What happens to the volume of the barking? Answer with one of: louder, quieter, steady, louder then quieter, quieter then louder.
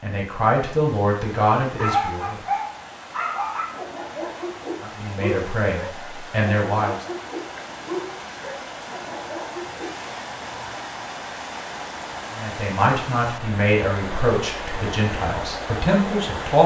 quieter.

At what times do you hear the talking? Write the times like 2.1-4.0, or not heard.
0.0-2.4, 4.8-7.0, 12.3-16.6.